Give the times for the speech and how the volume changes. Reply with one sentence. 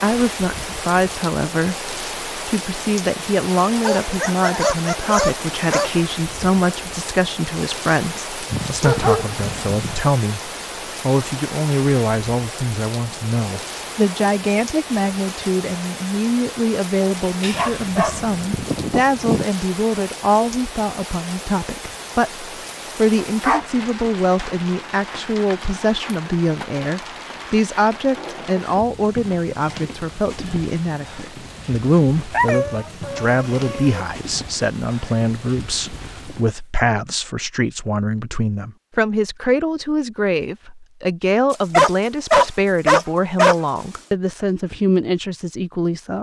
You can hear the speech from 0.0 to 46.1 s, at a steady volume.